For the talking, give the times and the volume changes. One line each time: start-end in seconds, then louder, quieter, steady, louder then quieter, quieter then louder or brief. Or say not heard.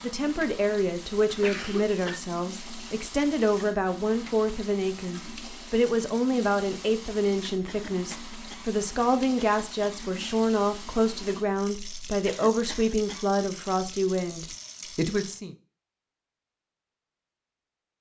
0.0-15.6 steady.